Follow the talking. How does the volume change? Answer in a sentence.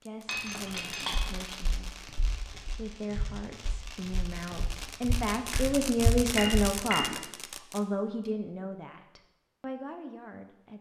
The volume of the talking goes up, then down.